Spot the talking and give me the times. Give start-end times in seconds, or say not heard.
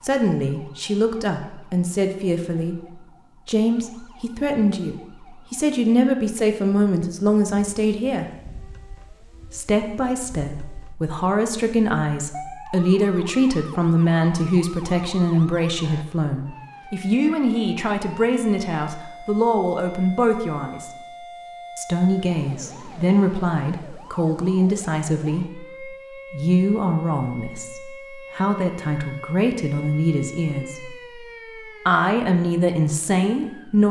0.0-8.2, 9.5-20.9, 21.8-31.1, 31.9-33.8.